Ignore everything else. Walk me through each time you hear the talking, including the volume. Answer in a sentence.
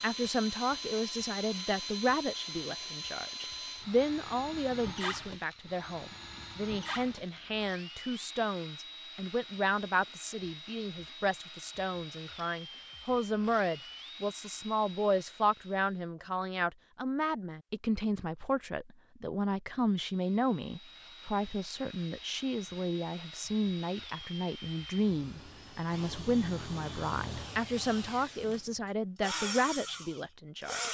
You can hear the talking from 0.0 to 30.8 s, at a steady volume.